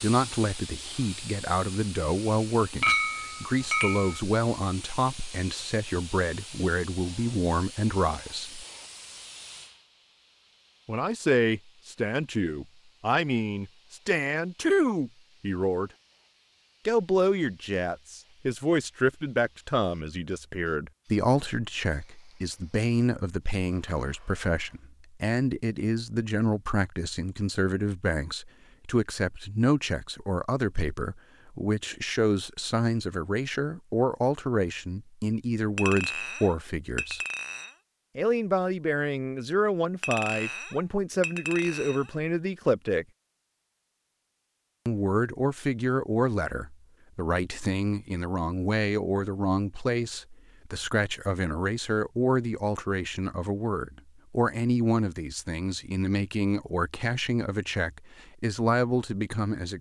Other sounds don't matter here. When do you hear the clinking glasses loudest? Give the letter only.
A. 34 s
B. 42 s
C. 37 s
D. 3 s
D.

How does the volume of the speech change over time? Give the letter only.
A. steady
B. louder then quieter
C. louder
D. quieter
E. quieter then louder
A.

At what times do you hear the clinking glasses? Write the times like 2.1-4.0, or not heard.
2.8-4.2, 35.8-37.7, 40.0-42.1.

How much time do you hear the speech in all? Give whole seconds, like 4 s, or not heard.
54 s.